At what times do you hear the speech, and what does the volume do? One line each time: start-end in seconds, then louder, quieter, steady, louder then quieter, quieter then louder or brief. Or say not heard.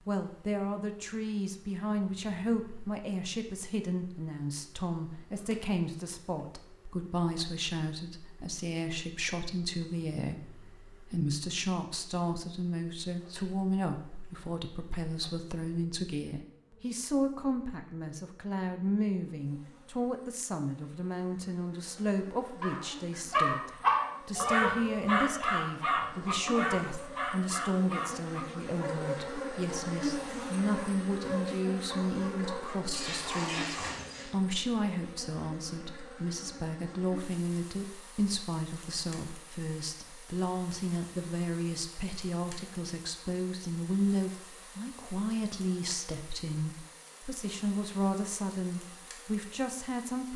0.1-50.3 steady.